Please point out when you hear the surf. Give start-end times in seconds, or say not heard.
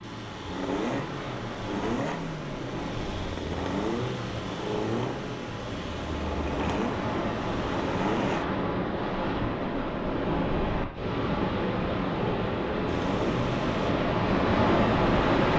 0.0-15.5.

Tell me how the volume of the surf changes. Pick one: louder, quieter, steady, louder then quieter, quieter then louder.
louder.